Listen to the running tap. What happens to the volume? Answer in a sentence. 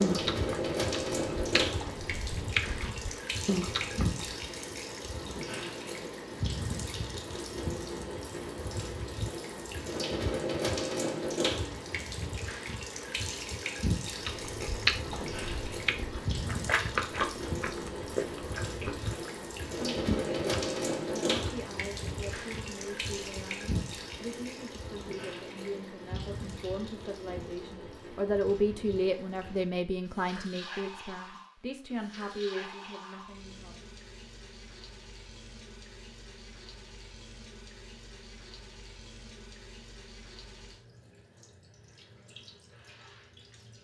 The loudness of the running tap goes down.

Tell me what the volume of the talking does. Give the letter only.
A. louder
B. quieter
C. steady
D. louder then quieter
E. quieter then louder
D.